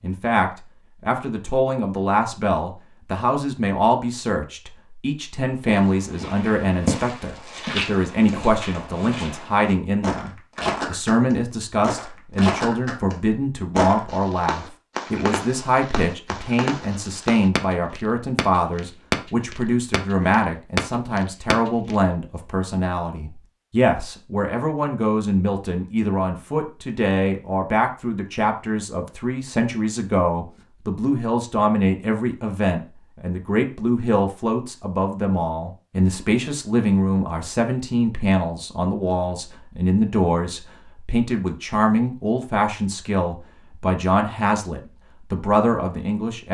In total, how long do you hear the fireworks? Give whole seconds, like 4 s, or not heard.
8 s.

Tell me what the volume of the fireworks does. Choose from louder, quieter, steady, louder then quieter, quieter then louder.
louder.